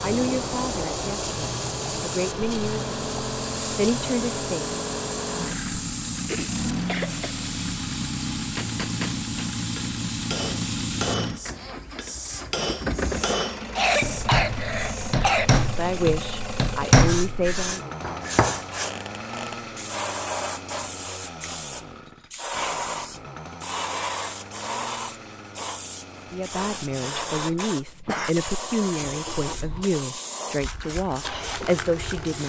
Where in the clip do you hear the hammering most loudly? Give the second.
17 s.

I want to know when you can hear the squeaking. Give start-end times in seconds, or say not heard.
18.8-19.6.